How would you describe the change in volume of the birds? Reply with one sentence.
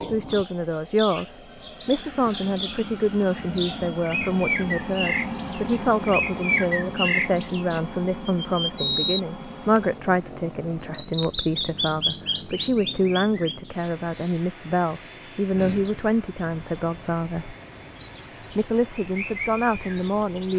The loudness of the birds goes up, then down.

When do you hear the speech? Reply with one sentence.
You can hear the speech from 0.1 to 17.6 s and from 18.5 to 20.5 s.